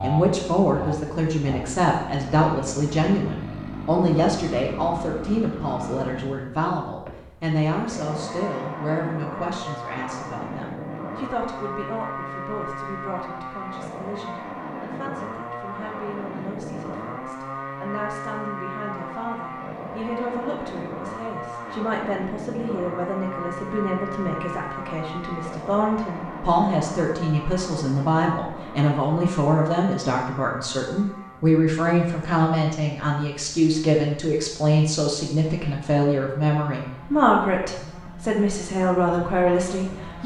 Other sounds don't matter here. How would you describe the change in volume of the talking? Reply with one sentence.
The volume of the talking goes down, then up.